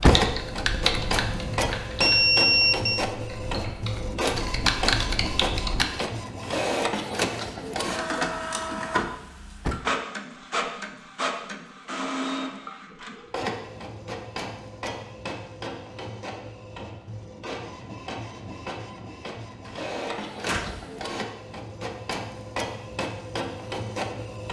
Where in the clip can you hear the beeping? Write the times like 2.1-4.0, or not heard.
0.9-3.0.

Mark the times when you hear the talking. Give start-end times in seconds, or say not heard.
not heard.